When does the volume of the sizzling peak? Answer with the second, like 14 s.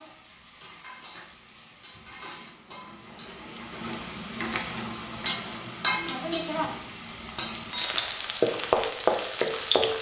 9 s.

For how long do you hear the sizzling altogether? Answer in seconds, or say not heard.
10 s.